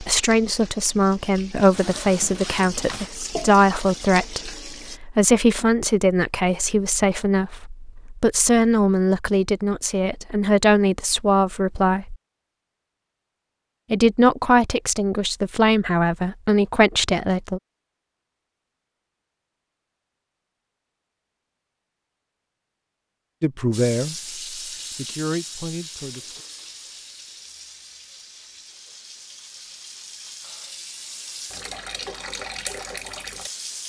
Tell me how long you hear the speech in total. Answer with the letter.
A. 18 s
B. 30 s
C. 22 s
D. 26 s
A.